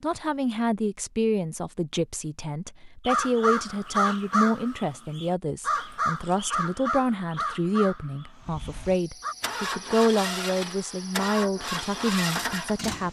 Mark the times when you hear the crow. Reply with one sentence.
You can hear the crow from 3.0 to 9.3 s.